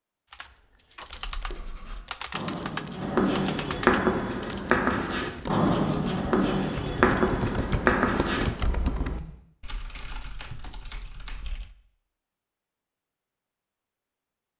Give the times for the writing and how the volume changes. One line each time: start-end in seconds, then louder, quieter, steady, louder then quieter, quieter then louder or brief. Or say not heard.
1.1-9.3 louder.